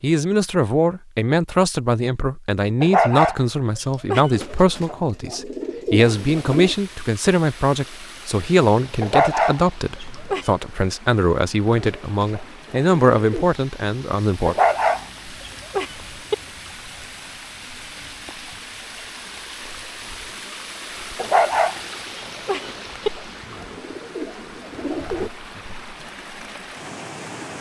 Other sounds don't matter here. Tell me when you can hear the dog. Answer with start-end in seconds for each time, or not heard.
2.8-4.3, 9.0-10.5, 14.4-16.4, 21.1-23.1.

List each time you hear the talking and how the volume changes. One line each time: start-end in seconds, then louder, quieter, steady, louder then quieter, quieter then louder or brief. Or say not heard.
0.0-14.6 steady.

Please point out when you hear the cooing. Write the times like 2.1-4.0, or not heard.
4.3-6.8, 11.8-13.4, 22.6-25.3.